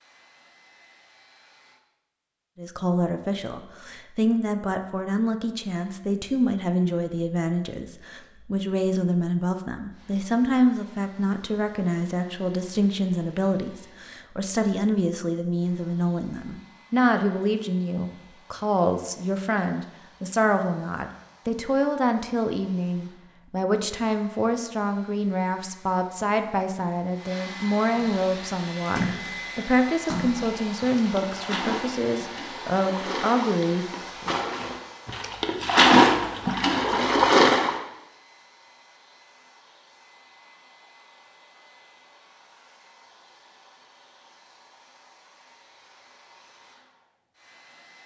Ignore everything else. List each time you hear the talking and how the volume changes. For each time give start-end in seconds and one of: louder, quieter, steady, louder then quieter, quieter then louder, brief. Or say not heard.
2.5-34.4 steady.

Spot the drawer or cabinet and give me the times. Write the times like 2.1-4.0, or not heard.
not heard.